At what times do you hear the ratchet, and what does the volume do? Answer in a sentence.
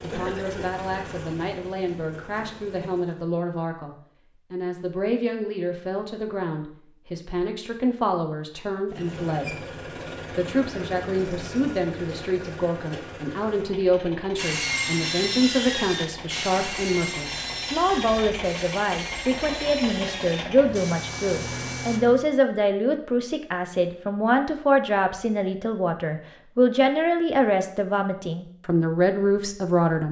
You can't hear the ratchet here.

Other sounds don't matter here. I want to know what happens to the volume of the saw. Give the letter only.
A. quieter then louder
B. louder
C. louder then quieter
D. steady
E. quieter
E.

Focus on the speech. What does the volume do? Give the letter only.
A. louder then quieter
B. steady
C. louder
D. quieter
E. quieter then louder
C.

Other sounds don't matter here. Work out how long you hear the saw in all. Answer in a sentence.
You can hear the saw for 8 seconds altogether.